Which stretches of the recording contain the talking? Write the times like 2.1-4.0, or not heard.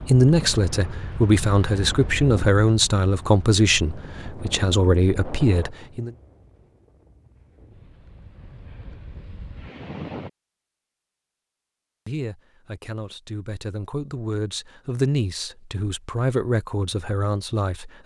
0.0-6.1, 12.1-18.0.